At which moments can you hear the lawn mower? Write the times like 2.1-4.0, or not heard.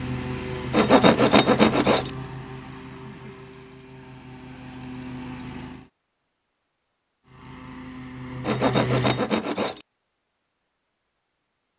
0.0-5.9, 7.2-9.3.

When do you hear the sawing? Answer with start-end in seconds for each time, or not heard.
0.7-2.1, 8.4-9.8.